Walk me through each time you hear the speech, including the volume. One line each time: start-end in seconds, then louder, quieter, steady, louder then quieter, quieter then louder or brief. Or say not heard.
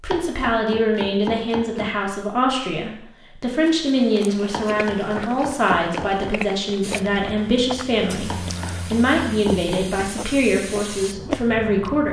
0.0-12.0 steady.